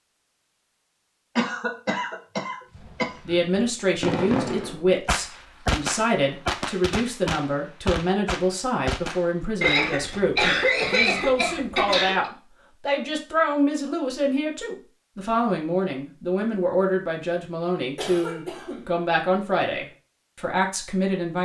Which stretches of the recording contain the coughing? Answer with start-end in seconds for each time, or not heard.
1.4-3.4, 9.6-12.3, 17.9-18.9.